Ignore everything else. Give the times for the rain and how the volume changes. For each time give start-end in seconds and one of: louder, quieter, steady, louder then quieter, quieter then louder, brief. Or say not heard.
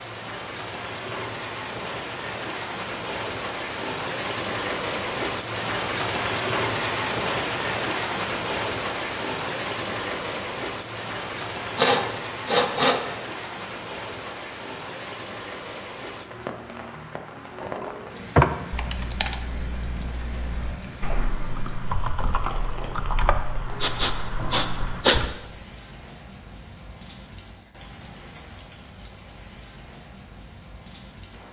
0.0-31.4 quieter.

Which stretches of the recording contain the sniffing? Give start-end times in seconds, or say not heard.
11.8-13.0, 23.8-25.2.